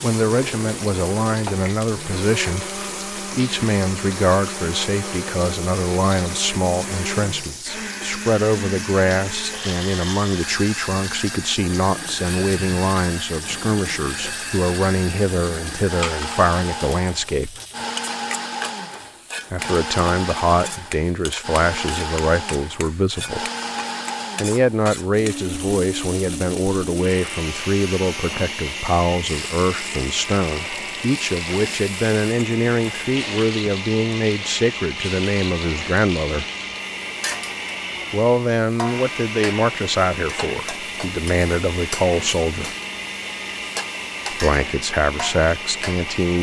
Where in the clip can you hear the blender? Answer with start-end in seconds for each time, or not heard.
0.0-46.3.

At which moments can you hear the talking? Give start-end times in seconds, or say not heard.
0.0-17.6, 19.5-23.4, 24.4-36.5, 38.1-42.8, 44.3-46.3.